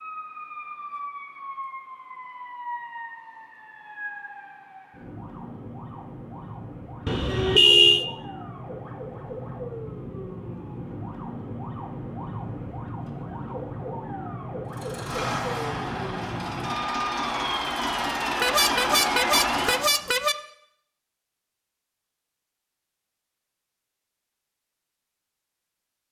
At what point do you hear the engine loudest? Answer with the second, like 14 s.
19 s.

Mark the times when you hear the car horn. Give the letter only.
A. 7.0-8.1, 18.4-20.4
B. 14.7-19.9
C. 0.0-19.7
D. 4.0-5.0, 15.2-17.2
A.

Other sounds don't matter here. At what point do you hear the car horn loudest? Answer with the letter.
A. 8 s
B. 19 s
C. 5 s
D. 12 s
A.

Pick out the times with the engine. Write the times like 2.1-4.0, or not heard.
14.7-19.9.